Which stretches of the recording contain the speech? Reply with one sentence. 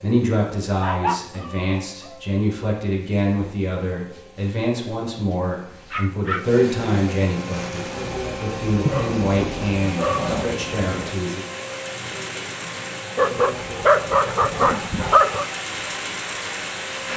You can hear the speech from 0.0 to 11.4 s.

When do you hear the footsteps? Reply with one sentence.
The footsteps can't be heard in this clip.